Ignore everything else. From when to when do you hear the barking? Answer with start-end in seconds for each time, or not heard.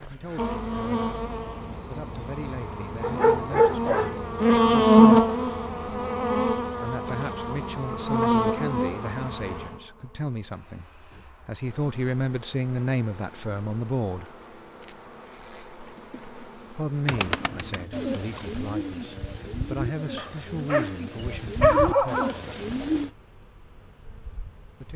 3.0-4.2, 20.1-20.9, 21.6-22.4.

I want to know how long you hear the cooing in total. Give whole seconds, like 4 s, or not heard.
6 s.